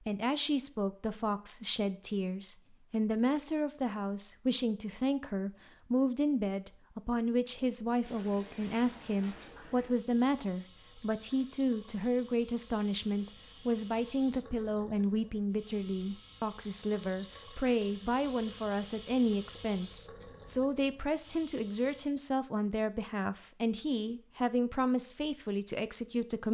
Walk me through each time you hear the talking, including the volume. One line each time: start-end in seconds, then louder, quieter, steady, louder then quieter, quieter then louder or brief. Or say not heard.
0.1-26.4 steady.